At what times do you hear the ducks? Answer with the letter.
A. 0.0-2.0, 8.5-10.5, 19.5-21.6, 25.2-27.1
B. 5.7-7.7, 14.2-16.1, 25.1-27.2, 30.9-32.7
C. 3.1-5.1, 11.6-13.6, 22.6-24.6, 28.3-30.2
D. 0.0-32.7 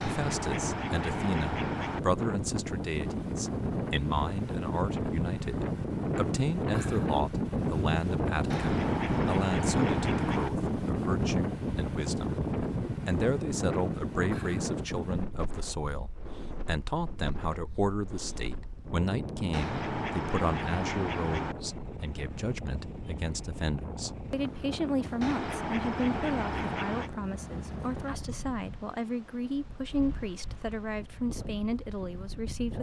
A.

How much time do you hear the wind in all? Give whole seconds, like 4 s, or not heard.
33 s.